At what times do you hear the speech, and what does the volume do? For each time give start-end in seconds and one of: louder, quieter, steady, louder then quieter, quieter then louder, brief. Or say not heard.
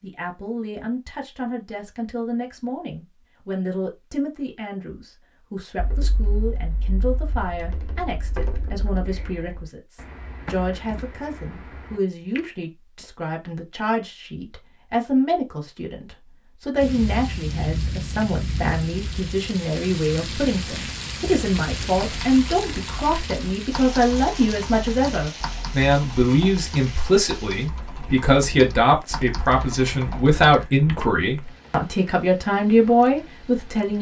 0.0-33.9 louder.